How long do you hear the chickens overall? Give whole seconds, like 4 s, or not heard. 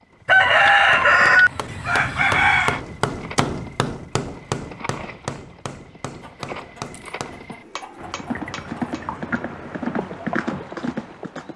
5 s.